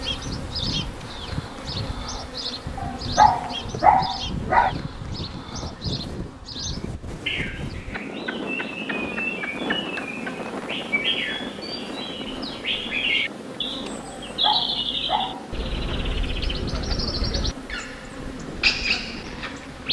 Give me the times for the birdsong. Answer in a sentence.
The birdsong can be heard from 0.0 to 19.8 s.